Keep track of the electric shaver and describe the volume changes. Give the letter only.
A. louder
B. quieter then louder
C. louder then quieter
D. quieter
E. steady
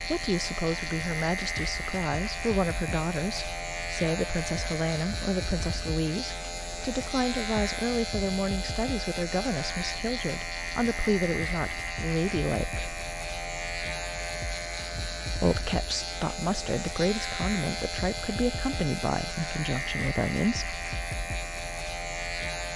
E.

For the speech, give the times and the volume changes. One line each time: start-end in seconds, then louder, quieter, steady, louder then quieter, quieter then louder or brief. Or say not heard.
0.0-13.0 steady
15.3-20.8 steady.